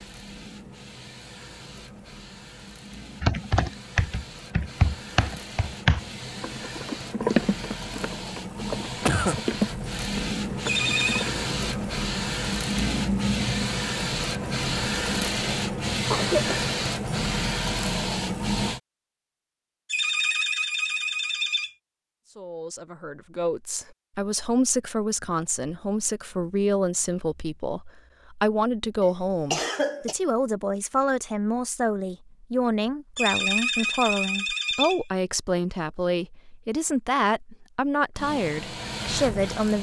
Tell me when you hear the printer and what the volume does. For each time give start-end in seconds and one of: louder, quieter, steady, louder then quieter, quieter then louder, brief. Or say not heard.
0.0-18.8 louder
38.1-39.7 brief.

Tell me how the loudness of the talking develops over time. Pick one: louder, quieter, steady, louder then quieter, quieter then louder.
steady.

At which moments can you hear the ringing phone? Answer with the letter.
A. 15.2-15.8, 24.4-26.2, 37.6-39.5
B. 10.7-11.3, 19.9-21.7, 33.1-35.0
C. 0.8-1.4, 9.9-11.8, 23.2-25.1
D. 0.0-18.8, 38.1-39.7
B.